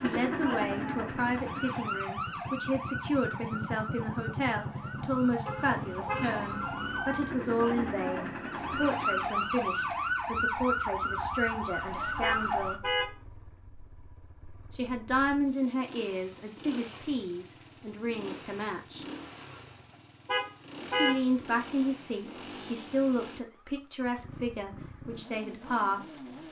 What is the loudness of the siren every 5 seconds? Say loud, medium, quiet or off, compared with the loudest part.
medium, loud, loud, off, off, off.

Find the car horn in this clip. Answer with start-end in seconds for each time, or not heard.
5.5-6.8, 12.2-13.2, 20.2-21.2.